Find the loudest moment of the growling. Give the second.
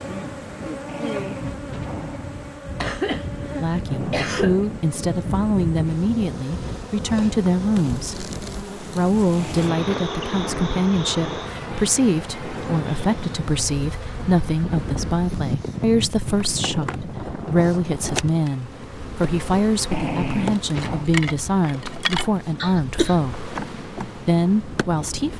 20 s.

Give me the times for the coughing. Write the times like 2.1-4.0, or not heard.
2.8-4.7, 22.6-23.1.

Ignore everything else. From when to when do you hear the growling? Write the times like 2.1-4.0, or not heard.
0.8-2.4, 9.3-11.4, 19.9-21.1.